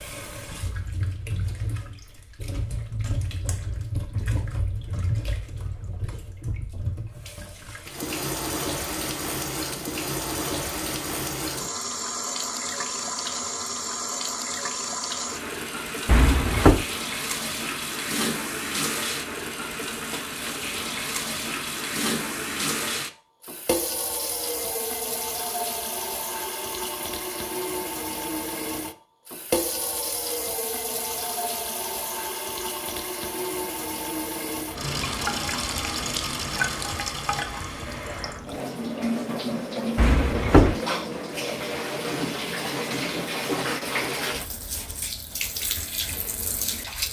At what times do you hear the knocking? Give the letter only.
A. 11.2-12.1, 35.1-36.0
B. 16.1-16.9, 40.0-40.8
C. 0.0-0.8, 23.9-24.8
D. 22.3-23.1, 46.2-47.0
B.